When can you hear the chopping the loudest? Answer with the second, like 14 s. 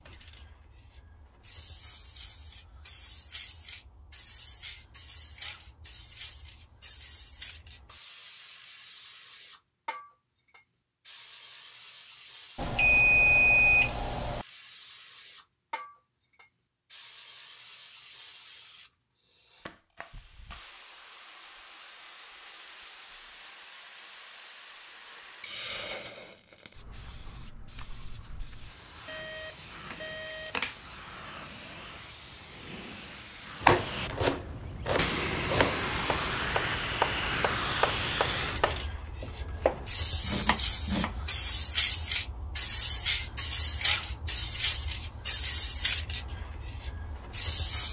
34 s.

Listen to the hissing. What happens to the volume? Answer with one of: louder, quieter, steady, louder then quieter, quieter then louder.
louder.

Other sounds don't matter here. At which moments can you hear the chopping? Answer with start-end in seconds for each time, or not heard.
33.6-41.2.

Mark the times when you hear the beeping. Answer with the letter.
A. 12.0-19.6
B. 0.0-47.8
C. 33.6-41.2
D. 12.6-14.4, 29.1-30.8
D.